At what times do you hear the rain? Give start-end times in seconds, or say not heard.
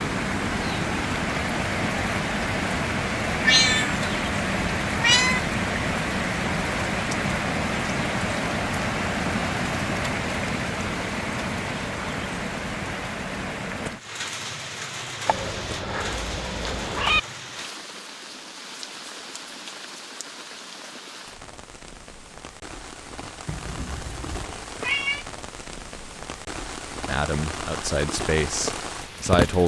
0.0-29.6.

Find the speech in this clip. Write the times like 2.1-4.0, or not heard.
27.1-29.6.